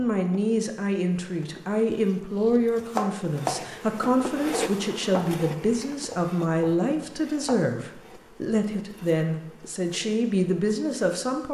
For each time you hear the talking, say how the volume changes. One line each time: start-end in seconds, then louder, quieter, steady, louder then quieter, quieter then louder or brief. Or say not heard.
0.0-11.5 steady.